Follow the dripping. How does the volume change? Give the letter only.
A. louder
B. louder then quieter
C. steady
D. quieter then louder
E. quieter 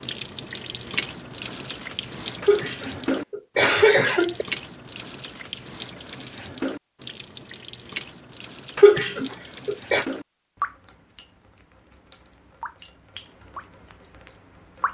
E.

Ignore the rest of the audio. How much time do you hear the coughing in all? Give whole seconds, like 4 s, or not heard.
3 s.